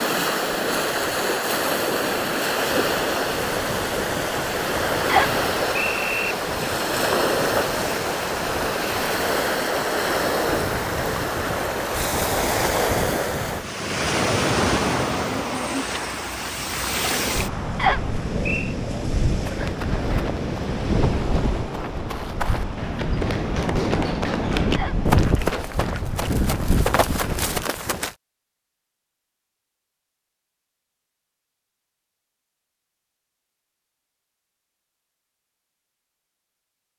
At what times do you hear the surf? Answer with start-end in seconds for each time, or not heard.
0.0-27.6.